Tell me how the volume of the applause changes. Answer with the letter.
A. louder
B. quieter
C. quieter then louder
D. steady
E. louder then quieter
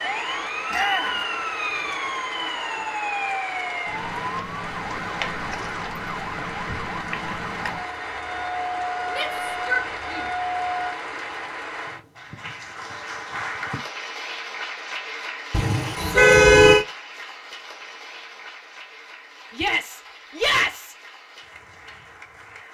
B.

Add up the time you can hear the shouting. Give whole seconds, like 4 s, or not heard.
3 s.